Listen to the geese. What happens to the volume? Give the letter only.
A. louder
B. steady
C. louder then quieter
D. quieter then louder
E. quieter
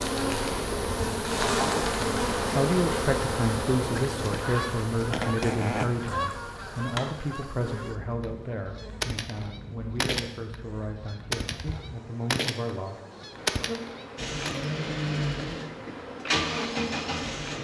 D.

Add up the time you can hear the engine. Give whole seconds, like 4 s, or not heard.
3 s.